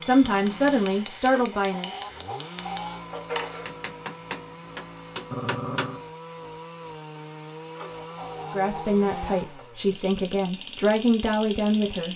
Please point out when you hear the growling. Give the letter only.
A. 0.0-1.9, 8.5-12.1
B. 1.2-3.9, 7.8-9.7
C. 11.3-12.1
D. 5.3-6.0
D.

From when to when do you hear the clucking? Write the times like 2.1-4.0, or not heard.
1.2-3.9, 7.8-9.7.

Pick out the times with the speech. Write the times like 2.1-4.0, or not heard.
0.0-1.9, 8.5-12.1.